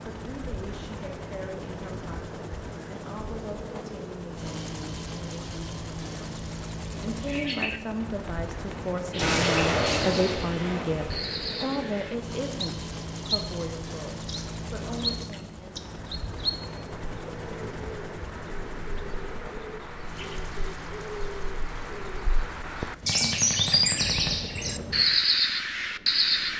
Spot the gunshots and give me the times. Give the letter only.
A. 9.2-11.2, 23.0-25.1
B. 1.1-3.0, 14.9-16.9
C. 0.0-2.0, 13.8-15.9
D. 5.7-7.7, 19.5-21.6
A.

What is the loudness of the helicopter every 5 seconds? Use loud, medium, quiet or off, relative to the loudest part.
loud, loud, loud, loud, medium, quiet.